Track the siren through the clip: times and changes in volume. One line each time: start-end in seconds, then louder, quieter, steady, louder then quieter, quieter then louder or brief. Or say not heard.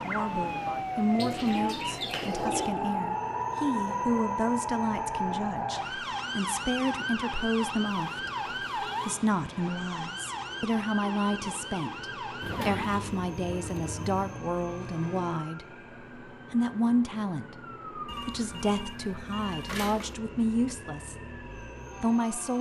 0.0-22.5 quieter.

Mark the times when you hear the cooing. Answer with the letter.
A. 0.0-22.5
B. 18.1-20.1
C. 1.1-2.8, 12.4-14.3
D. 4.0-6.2
C.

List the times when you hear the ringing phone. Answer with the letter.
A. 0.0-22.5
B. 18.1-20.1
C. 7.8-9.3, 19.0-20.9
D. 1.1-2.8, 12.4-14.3
B.